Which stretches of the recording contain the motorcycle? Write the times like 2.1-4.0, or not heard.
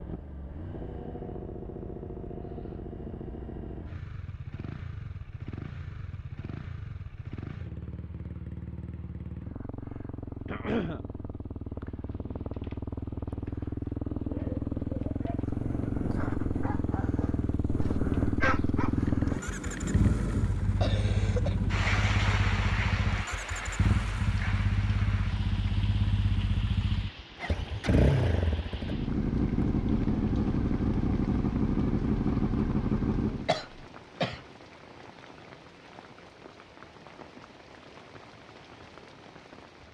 0.0-33.5.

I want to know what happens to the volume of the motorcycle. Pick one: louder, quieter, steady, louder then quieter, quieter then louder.
louder.